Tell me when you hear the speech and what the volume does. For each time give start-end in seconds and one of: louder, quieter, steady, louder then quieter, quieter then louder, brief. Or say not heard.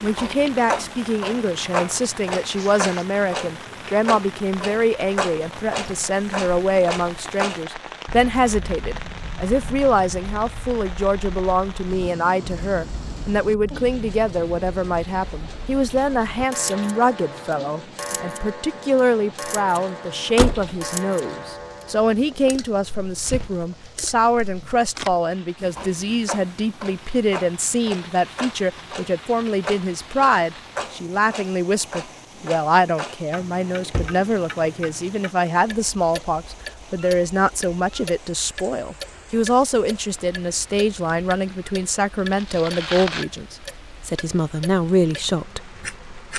0.0-46.3 steady.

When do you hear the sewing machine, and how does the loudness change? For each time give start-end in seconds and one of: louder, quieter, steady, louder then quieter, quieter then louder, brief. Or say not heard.
not heard.